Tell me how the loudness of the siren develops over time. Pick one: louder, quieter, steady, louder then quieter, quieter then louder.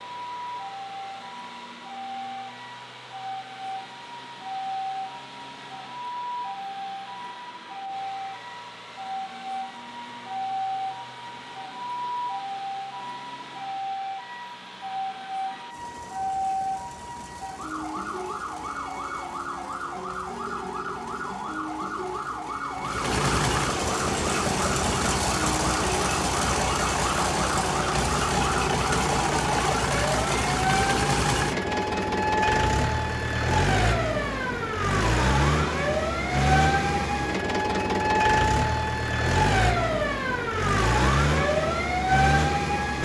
louder.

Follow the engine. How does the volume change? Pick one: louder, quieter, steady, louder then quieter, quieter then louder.
louder.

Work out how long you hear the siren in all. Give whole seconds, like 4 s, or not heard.
43 s.